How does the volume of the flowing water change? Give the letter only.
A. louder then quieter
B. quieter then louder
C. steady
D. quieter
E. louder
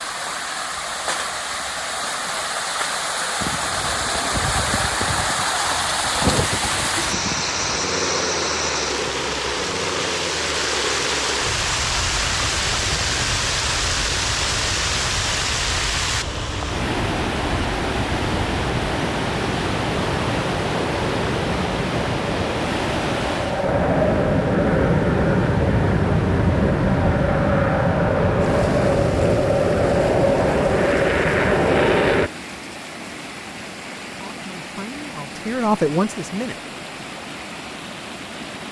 D.